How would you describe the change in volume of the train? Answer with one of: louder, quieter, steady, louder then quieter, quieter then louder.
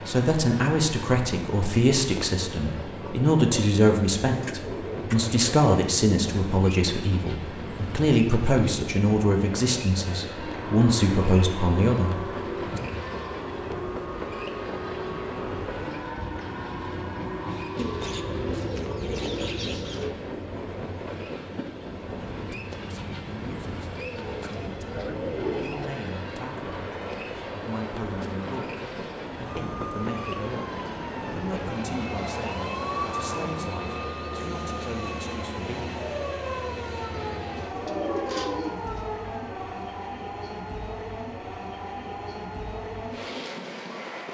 steady.